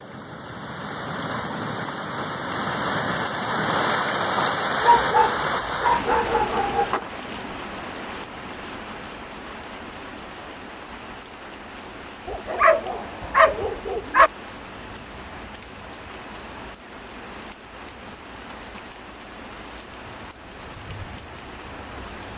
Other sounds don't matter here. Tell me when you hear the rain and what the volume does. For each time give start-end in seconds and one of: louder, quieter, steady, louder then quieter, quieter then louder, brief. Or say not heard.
0.0-22.3 quieter.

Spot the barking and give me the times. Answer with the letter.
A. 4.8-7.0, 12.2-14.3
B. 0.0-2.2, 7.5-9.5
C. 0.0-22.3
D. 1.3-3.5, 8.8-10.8
A.